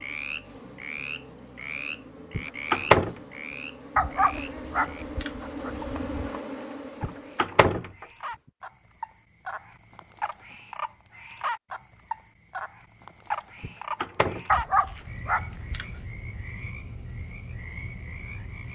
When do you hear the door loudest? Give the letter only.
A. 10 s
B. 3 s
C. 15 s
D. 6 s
B.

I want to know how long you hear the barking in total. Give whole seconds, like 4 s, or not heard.
4 s.